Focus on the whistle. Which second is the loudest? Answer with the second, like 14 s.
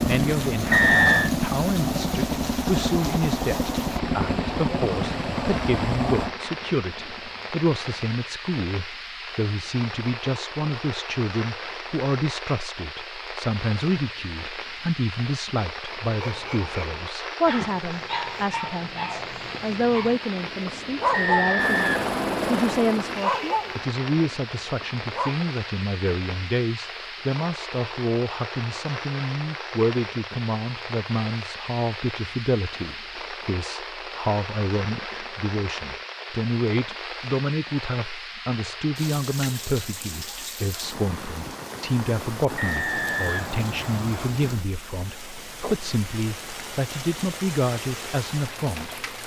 1 s.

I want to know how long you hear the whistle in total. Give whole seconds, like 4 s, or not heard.
4 s.